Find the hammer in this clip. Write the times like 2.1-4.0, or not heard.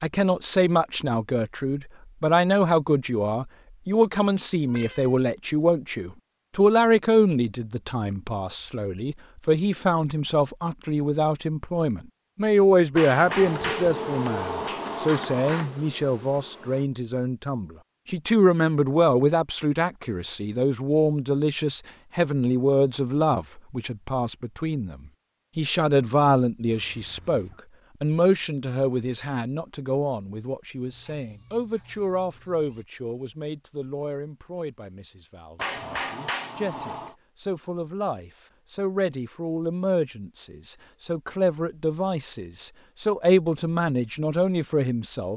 12.9-15.7, 35.5-37.1.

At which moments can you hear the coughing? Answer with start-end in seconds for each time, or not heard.
not heard.